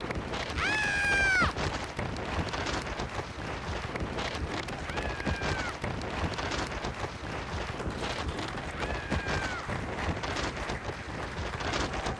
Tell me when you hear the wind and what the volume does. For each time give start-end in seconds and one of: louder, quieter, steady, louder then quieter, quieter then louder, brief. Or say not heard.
0.0-12.1 steady.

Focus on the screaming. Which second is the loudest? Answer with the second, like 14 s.
1 s.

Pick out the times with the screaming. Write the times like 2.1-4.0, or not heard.
0.6-1.6, 4.8-5.8, 8.7-9.7.